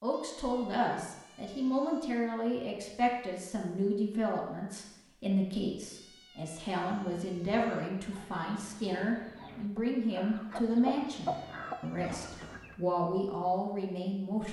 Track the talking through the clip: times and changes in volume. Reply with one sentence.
The talking can be heard from 0.0 to 14.4 s, at a steady volume.